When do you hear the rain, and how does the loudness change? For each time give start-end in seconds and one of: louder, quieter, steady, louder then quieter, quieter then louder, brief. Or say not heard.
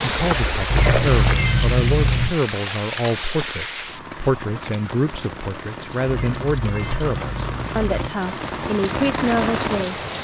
0.0-10.2 quieter then louder.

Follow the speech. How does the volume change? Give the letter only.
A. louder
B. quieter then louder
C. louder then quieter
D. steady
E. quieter
D.